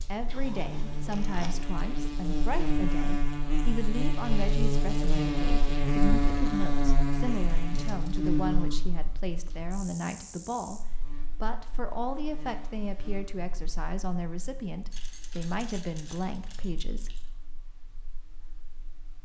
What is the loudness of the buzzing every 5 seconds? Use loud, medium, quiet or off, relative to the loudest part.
loud, loud, quiet, quiet.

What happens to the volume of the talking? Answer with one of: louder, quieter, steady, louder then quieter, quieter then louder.
steady.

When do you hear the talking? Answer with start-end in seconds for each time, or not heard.
0.0-17.1.